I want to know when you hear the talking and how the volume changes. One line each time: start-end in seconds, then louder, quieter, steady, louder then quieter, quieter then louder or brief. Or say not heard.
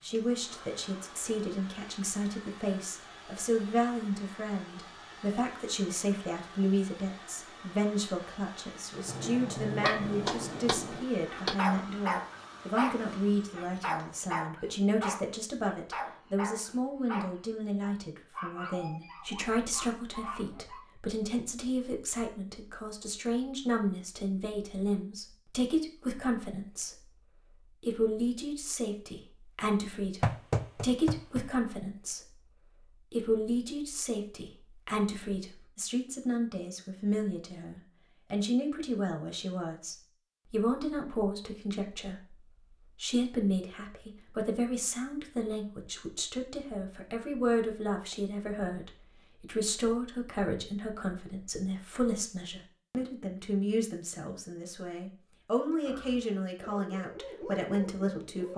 0.0-58.5 steady.